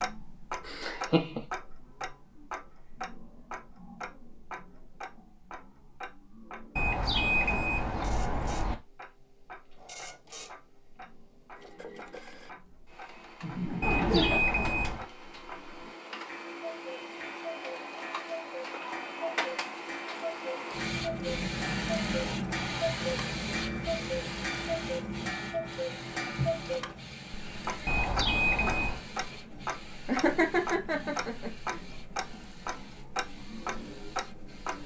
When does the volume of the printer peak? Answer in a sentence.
The loudest moment of the printer is at 22 seconds.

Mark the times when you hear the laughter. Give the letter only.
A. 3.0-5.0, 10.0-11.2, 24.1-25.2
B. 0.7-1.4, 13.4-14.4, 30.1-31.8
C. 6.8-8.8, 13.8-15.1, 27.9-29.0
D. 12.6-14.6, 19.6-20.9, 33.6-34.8
B.